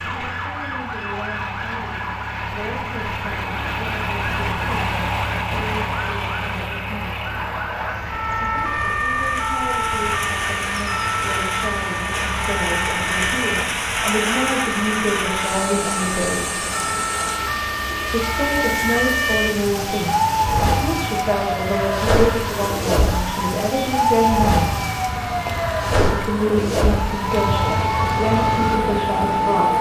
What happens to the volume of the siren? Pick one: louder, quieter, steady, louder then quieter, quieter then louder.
louder.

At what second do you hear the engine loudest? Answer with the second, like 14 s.
5 s.